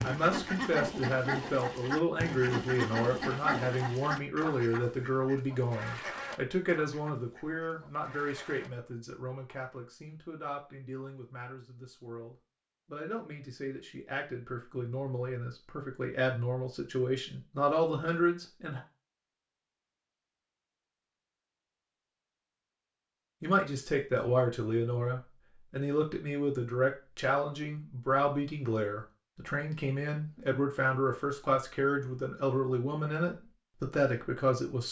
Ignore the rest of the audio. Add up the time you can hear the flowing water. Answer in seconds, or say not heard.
not heard.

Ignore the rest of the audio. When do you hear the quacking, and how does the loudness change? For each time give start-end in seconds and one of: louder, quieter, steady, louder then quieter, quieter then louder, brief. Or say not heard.
0.0-8.7 quieter.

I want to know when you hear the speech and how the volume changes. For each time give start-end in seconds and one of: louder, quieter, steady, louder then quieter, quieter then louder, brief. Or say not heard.
0.0-18.8 quieter then louder
23.4-34.8 steady.